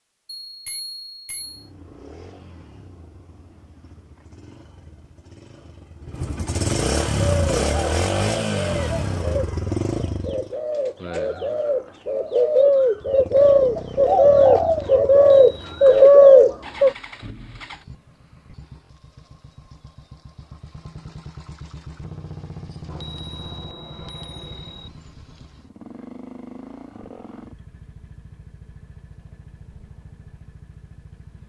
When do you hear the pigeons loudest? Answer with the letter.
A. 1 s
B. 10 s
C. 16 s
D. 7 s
C.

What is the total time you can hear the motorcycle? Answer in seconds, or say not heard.
28 s.